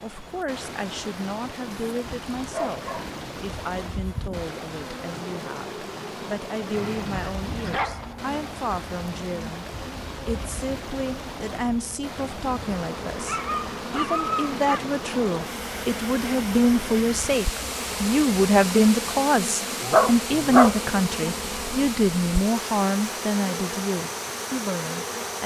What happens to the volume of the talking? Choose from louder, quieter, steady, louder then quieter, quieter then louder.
louder.